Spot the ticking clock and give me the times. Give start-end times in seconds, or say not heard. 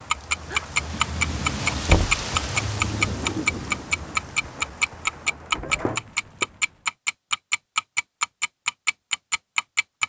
0.1-10.0.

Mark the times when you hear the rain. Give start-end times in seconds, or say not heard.
0.0-6.9.